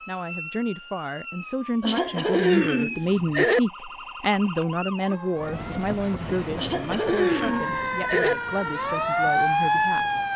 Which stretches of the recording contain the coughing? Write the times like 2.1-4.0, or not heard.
1.8-3.6, 6.5-8.3.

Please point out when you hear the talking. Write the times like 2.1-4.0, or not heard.
0.1-10.1.